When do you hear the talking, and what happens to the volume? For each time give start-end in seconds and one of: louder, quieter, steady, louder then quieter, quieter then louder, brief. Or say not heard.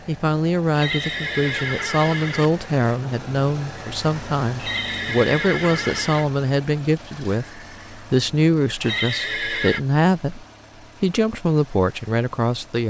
0.1-12.8 steady.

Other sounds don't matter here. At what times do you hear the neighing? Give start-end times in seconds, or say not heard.
0.8-2.5, 4.5-6.2, 8.8-9.8.